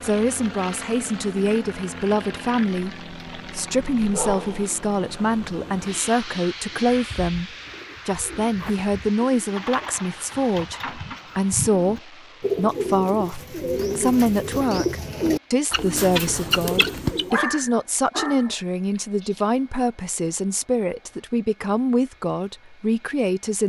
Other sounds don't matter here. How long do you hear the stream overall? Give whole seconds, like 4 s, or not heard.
not heard.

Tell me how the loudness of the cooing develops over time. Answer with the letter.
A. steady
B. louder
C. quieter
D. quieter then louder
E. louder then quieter
B.